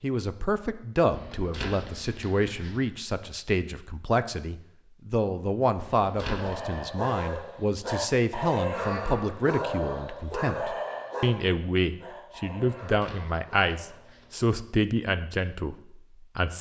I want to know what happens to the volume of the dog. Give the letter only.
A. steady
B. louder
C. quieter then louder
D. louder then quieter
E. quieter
E.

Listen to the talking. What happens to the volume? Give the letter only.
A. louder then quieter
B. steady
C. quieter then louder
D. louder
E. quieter
B.